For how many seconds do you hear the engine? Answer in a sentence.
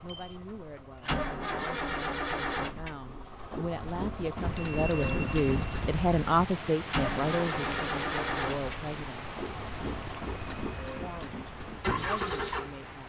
You can hear the engine for 13 seconds altogether.